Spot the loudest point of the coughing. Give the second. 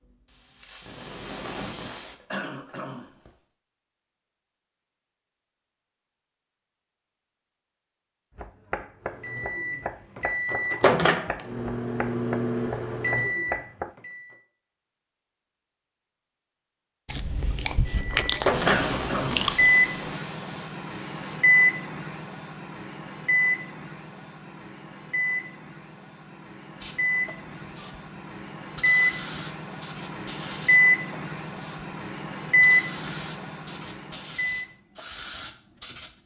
19 s.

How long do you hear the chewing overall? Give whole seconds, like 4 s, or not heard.
3 s.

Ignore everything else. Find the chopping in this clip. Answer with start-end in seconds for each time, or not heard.
8.3-13.9.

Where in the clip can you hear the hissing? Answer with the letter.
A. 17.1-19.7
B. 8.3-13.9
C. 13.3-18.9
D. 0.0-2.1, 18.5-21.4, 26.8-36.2
D.